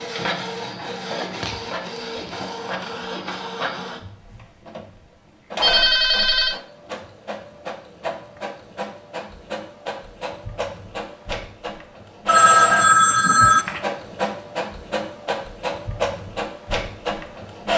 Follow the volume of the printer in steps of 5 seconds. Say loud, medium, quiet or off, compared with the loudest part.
loud, medium, loud, loud.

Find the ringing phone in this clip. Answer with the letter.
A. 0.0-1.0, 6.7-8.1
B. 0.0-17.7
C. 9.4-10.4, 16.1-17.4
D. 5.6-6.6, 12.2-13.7
D.